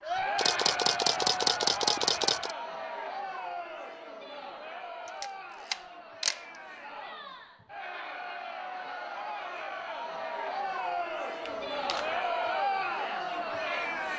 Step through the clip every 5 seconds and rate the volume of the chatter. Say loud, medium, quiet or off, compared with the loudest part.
loud, medium, loud.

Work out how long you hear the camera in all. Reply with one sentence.
The camera can be heard for 4 seconds in total.